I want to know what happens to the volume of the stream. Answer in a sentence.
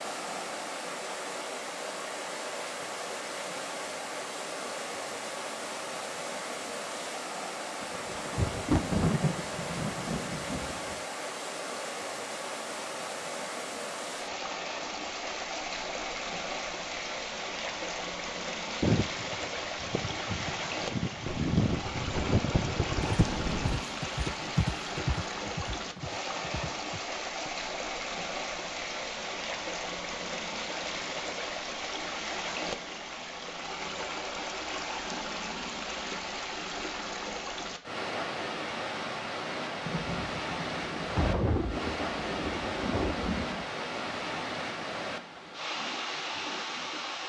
The volume of the stream stays about the same.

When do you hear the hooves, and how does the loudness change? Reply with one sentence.
The hooves can be heard from 18.8 to 27.5 s, getting louder then quieter.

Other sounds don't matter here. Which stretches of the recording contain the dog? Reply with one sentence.
The dog can't be heard in this clip.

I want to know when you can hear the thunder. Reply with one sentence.
The thunder can be heard from 7.8 to 11.0 s, from 21.2 to 23.8 s and from 39.9 to 43.6 s.